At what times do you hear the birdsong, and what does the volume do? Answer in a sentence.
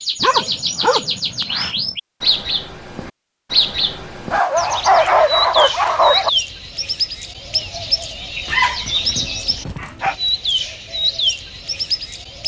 The birdsong can be heard from 0.0 to 12.4 s, at a steady volume.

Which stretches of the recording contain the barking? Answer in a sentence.
The barking can be heard from 0.2 to 1.9 s, from 4.3 to 6.3 s and from 8.4 to 10.2 s.